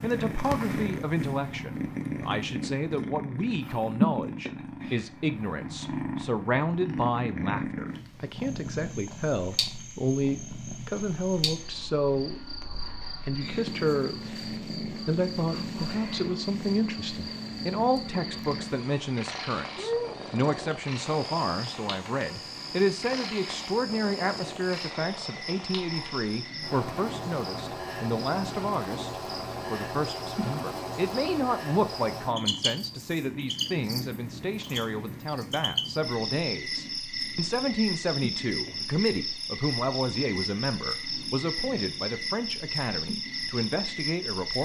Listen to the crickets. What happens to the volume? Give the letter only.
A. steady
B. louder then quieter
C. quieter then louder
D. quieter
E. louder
E.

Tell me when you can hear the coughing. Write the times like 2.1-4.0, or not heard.
not heard.